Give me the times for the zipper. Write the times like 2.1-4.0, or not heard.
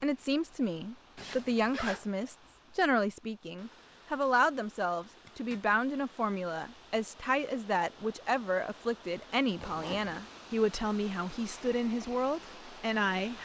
1.1-2.0, 5.0-5.7, 9.6-10.2.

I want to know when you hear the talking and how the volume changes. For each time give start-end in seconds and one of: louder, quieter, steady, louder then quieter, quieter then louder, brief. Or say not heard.
0.0-13.3 steady.